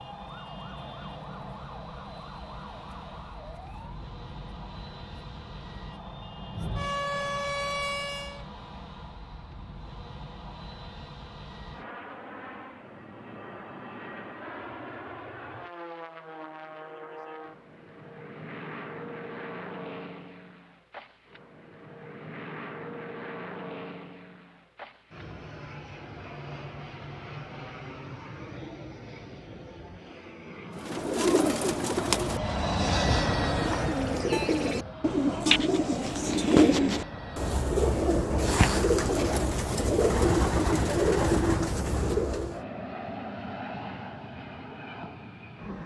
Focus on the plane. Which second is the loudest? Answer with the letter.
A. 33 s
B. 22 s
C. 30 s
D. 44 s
A.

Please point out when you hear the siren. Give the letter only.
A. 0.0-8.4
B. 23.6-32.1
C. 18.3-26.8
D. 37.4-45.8
A.